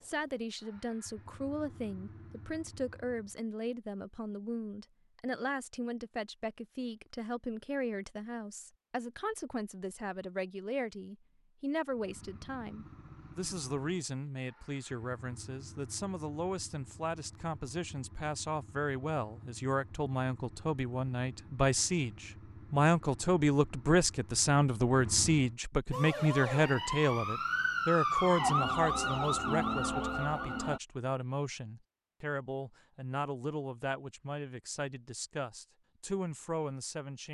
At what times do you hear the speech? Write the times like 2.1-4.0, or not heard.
0.0-37.2.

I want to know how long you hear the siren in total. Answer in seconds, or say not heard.
5 s.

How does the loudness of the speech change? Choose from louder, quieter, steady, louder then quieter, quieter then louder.
louder then quieter.